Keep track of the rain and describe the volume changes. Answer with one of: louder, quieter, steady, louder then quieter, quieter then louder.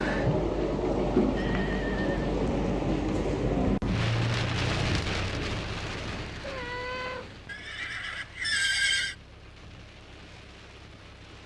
quieter.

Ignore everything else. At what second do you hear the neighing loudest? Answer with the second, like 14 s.
9 s.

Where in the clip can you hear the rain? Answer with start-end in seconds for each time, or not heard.
0.0-11.4.